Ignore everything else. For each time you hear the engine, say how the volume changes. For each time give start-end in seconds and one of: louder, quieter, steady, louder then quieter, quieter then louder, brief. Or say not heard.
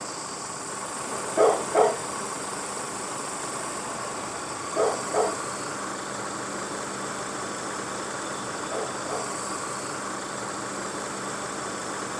0.0-12.1 steady.